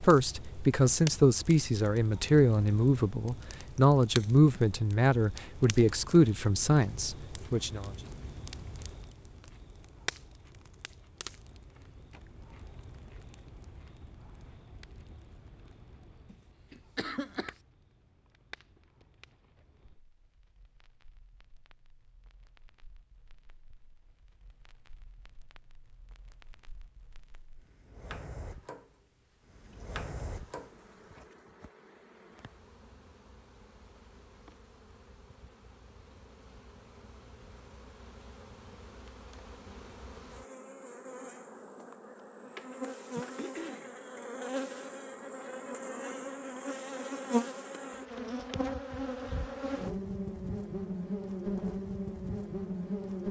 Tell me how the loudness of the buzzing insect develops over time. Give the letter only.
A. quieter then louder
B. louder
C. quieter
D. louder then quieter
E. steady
B.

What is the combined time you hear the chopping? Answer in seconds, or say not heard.
not heard.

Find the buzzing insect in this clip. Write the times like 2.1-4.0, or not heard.
29.4-53.2.